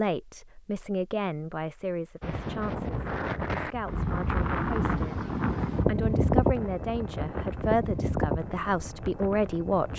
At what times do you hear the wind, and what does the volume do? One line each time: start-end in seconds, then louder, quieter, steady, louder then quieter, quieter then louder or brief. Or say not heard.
2.2-9.9 louder then quieter.